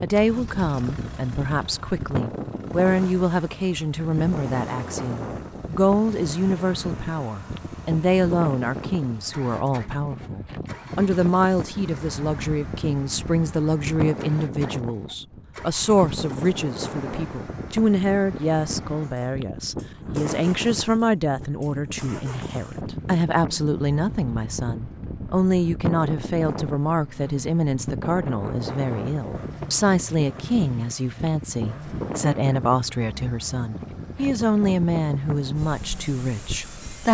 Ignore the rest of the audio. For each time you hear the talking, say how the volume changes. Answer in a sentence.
You can hear the talking from 0.0 to 37.1 s, at a steady volume.